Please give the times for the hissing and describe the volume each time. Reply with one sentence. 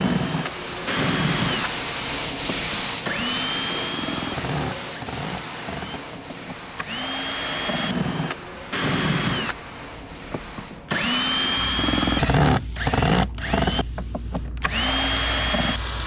You can hear the hissing from 0.0 to 16.0 s, getting quieter.